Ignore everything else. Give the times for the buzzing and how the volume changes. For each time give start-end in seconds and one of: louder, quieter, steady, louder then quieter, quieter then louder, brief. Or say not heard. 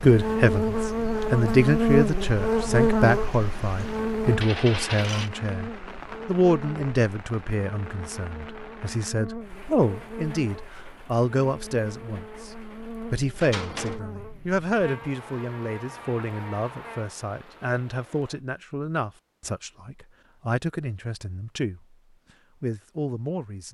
0.0-17.1 quieter.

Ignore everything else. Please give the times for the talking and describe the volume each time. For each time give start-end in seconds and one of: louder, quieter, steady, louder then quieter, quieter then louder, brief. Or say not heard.
0.0-21.9 quieter
22.6-23.6 brief.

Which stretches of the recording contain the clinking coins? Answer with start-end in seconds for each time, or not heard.
4.4-5.3, 13.4-14.0.